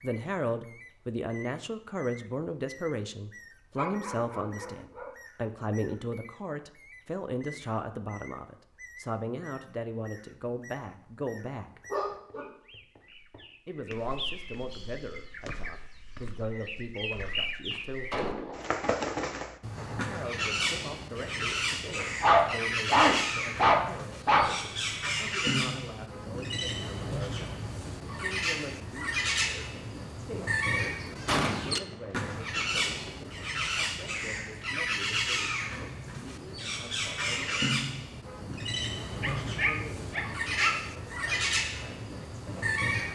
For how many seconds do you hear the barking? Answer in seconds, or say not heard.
6 s.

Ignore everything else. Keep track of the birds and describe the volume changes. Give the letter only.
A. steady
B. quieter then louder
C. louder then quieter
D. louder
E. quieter
D.